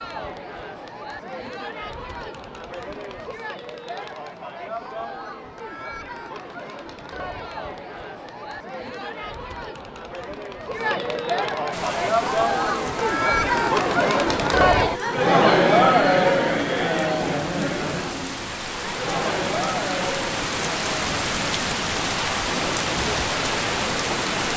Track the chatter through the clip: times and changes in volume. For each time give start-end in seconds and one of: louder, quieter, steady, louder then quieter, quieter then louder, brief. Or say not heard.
0.0-24.5 louder then quieter.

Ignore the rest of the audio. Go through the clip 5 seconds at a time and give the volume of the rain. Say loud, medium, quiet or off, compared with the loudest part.
off, off, medium, medium, loud.